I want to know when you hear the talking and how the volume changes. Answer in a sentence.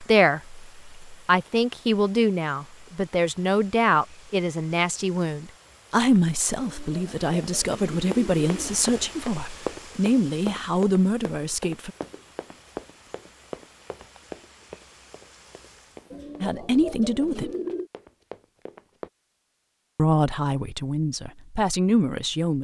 You can hear the talking from 0.0 to 11.9 s, at a steady volume; briefly from 16.4 to 17.5 s; and briefly from 19.9 to 22.5 s.